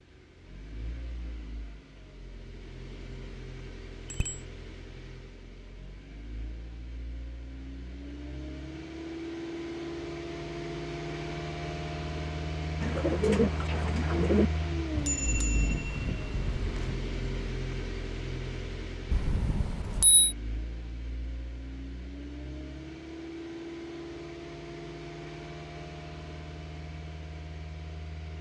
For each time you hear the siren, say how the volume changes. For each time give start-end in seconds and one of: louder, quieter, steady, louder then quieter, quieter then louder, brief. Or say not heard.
not heard.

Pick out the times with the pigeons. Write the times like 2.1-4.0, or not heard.
12.8-14.5.